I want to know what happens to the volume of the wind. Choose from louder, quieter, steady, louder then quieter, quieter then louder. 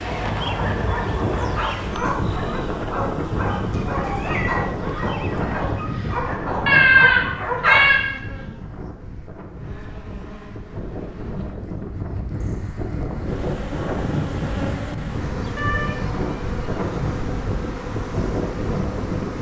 quieter then louder.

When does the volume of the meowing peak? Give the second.
7 s.